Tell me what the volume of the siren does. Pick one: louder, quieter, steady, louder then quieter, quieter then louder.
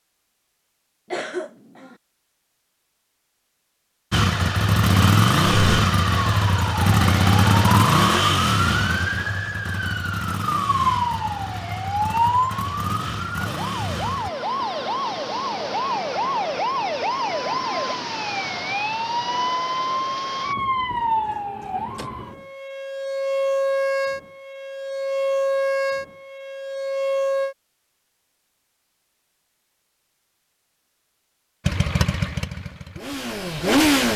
steady.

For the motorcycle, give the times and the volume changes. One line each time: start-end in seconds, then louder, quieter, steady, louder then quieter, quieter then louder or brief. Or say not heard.
4.1-14.3 quieter
31.6-34.1 brief.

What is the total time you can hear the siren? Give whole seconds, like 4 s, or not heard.
22 s.